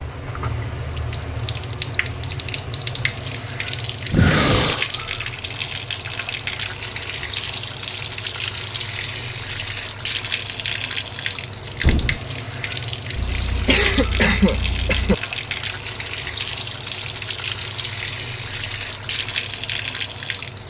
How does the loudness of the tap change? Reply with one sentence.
The volume of the tap stays about the same.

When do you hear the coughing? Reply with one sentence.
You can hear the coughing from 4.1 to 4.9 s and from 13.2 to 15.2 s.